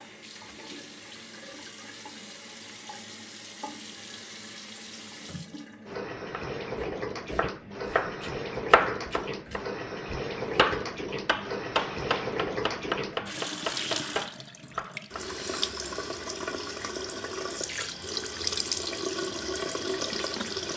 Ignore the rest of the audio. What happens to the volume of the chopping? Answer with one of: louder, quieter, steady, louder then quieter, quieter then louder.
quieter.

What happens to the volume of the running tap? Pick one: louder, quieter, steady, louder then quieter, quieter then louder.
louder.